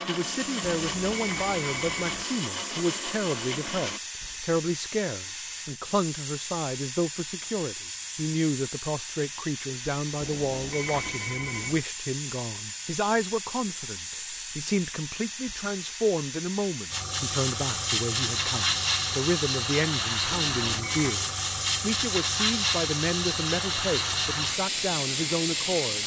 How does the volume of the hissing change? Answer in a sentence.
The loudness of the hissing goes up.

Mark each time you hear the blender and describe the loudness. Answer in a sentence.
The blender can be heard from 0.0 to 4.0 s, at a steady volume.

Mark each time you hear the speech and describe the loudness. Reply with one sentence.
You can hear the speech from 0.1 to 26.0 s, at a steady volume.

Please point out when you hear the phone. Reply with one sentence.
You can hear the phone from 0.6 to 2.2 s, from 10.2 to 11.8 s and from 20.3 to 21.2 s.